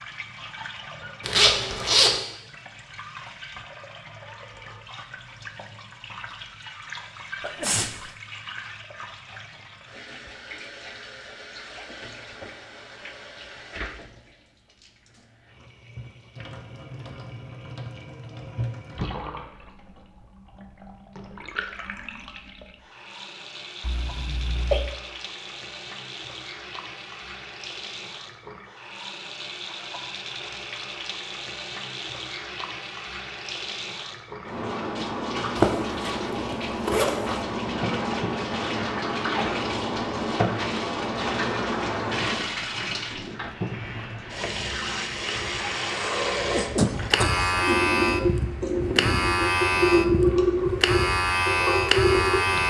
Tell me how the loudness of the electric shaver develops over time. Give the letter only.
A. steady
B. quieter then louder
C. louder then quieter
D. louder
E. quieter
D.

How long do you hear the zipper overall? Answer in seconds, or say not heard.
3 s.